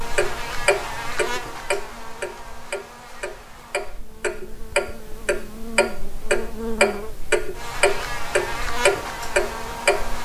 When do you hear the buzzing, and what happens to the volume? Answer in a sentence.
The buzzing can be heard from 0.0 to 10.2 s, getting quieter then louder.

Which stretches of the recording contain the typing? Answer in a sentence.
The typing can't be heard in this clip.